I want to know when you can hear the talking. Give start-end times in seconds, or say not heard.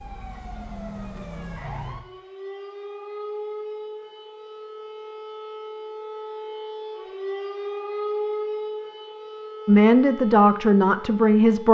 9.7-11.7.